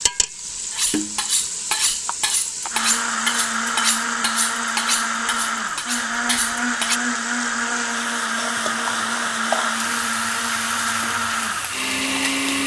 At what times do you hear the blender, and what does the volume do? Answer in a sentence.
The blender can be heard from 2.7 to 12.6 s, at a steady volume.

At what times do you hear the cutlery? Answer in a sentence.
You can hear the cutlery from 0.7 to 7.0 s.